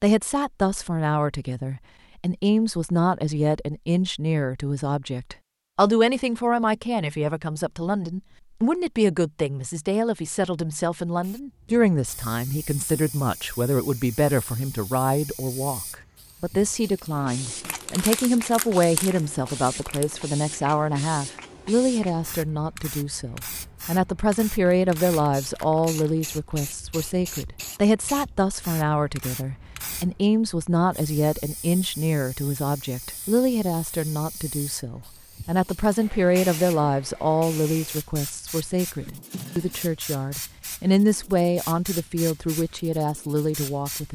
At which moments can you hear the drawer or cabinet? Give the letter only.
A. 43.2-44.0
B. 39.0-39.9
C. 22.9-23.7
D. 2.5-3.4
B.